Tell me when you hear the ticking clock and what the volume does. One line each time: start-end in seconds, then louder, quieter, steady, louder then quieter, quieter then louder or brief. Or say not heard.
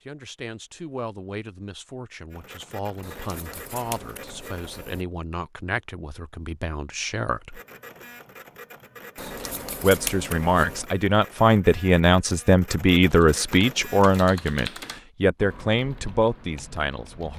not heard.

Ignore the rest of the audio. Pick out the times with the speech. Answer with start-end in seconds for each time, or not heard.
0.1-7.6, 9.8-17.3.